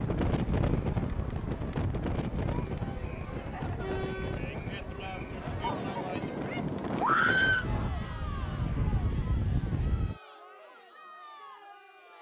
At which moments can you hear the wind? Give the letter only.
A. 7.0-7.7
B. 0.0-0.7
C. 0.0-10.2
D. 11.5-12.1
C.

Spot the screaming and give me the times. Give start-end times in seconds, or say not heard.
7.0-7.7.